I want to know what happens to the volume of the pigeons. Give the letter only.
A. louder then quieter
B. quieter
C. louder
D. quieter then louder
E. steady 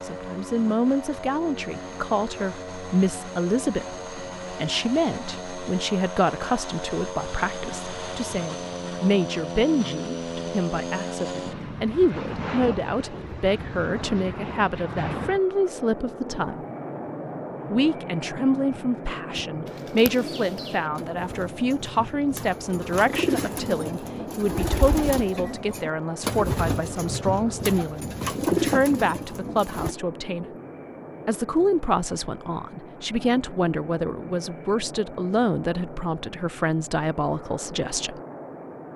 C.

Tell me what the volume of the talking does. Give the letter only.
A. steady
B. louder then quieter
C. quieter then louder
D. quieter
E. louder
A.